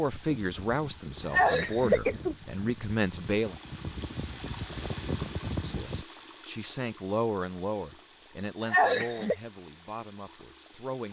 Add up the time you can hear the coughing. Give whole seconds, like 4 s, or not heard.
2 s.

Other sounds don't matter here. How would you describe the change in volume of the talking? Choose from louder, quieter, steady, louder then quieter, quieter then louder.
quieter.